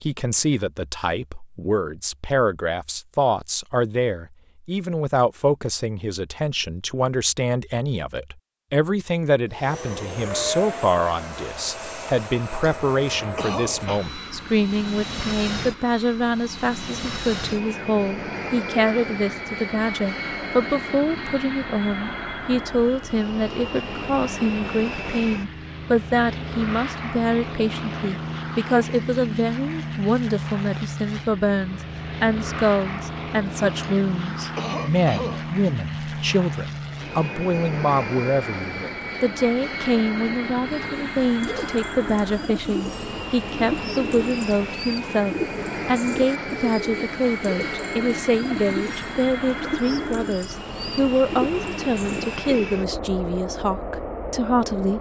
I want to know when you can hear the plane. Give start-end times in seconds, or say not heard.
9.5-54.9.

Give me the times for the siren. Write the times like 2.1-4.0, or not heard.
not heard.